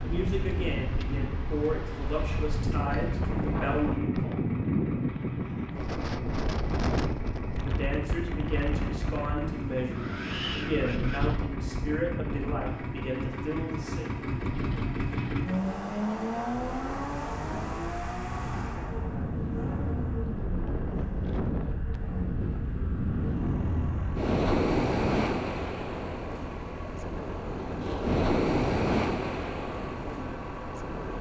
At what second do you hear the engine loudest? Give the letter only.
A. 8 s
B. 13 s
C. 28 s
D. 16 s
D.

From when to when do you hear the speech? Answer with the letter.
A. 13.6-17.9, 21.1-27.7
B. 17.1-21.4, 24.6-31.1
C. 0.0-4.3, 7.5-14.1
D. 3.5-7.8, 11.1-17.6
C.